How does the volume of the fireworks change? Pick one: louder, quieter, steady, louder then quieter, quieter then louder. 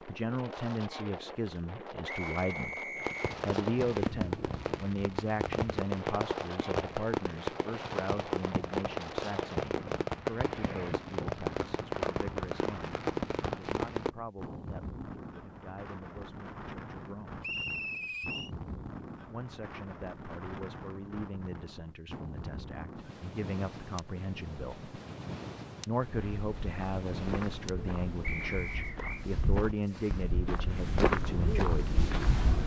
steady.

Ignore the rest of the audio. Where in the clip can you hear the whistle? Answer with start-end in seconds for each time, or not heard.
2.0-3.4, 17.4-18.5, 28.2-29.2.